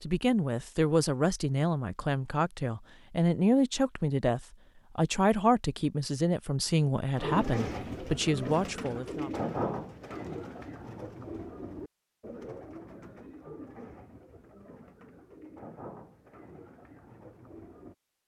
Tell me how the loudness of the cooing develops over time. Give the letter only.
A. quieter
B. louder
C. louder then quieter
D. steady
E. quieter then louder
A.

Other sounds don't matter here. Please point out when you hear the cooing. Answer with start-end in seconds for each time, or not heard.
7.2-17.9.